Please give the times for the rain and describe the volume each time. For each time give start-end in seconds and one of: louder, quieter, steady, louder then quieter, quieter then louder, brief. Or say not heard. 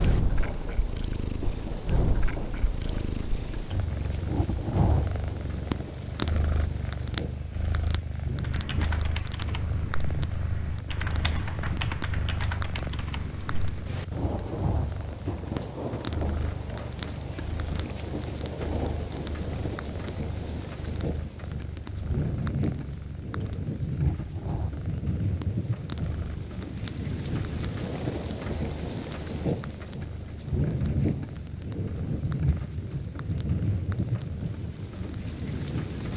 0.0-36.1 louder.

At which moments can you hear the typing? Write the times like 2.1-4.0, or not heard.
8.4-13.9.